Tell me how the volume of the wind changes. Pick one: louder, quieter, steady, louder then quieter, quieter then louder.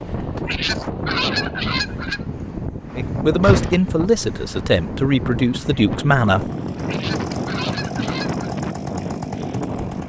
steady.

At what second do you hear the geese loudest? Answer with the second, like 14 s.
1 s.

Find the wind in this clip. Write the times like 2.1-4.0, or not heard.
0.0-10.0.